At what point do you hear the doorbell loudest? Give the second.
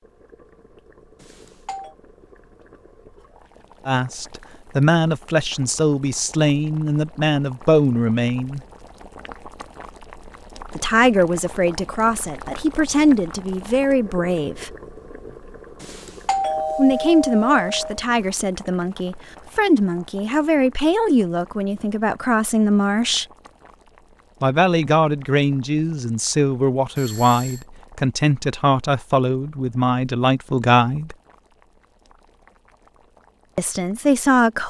16 s.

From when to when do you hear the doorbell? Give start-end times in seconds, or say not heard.
1.2-1.9, 15.8-18.0, 26.9-27.6.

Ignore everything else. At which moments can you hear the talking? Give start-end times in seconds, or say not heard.
3.9-8.6, 10.7-14.8, 16.8-23.2, 24.4-31.1, 33.5-34.6.